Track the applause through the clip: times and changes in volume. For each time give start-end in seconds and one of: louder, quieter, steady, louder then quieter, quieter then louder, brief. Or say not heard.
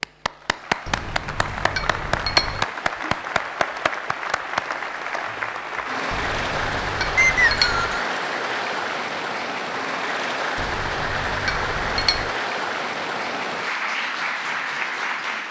0.0-15.4 steady.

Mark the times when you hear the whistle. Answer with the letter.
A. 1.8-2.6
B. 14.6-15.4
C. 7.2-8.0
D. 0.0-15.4
C.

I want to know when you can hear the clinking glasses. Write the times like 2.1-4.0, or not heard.
0.8-2.6, 6.1-8.0, 10.6-12.3.